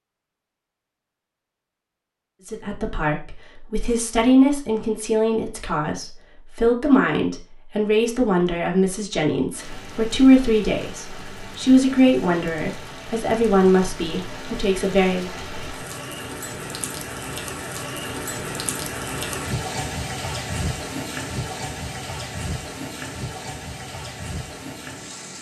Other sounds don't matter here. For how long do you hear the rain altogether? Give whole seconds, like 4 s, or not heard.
16 s.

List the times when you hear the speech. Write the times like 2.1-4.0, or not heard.
2.5-15.3.